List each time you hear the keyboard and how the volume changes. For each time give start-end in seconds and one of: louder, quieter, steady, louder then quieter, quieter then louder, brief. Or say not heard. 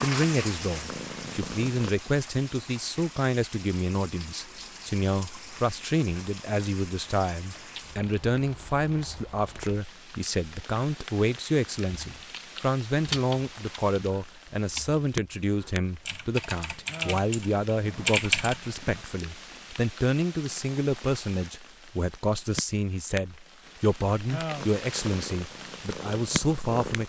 11.9-19.0 quieter then louder.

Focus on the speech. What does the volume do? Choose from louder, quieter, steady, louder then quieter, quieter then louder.
steady.